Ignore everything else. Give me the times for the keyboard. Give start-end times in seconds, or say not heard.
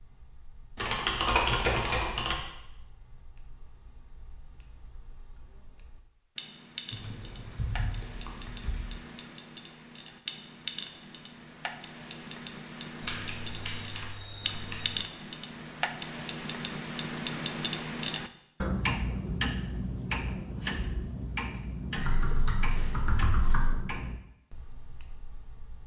0.8-2.4, 6.9-8.8, 13.0-15.1, 21.9-23.8.